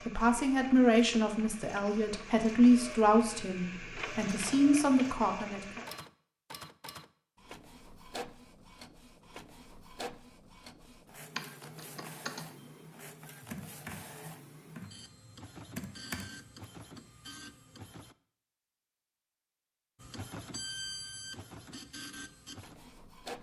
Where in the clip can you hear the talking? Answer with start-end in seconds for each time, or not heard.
0.1-5.8.